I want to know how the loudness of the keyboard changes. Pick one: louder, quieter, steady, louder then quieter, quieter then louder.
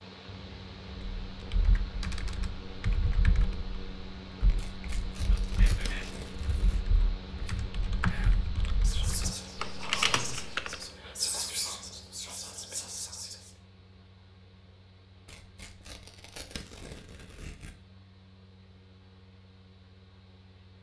quieter then louder.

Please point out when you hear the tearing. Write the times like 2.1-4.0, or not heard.
4.5-6.8, 15.2-17.8.